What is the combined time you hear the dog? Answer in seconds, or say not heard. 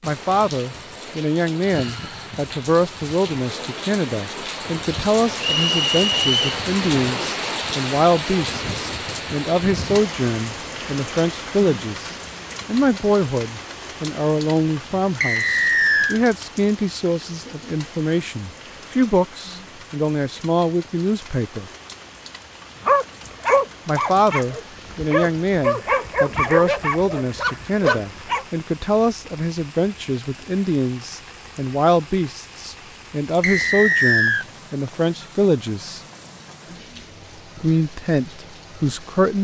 6 s.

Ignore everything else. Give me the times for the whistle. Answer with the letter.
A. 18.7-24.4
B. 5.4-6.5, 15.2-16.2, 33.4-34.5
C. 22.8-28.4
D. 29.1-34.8
B.